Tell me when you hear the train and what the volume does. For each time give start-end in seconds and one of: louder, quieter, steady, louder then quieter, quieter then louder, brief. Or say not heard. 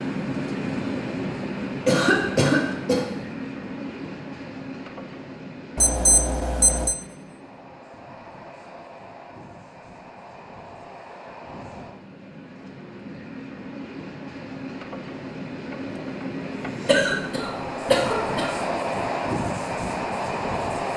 0.0-20.9 quieter then louder.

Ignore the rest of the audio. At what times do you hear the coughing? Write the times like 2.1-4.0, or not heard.
1.9-3.1, 16.9-18.5.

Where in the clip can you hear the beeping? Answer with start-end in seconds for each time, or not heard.
5.8-7.0.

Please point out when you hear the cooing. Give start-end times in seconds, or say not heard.
not heard.